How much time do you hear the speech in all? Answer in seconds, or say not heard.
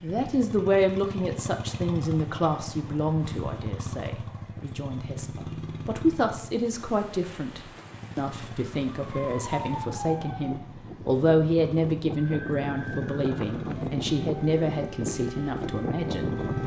16 s.